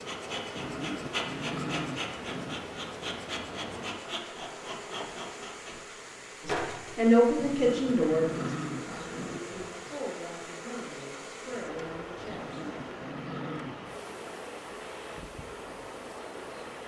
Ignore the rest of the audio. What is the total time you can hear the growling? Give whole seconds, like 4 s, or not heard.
6 s.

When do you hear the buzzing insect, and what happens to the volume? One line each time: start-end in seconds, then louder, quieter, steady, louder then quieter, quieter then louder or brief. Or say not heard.
0.0-16.8 quieter.